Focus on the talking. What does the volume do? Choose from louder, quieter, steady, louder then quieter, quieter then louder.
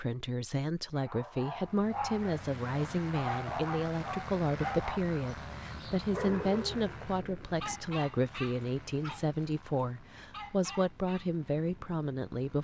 steady.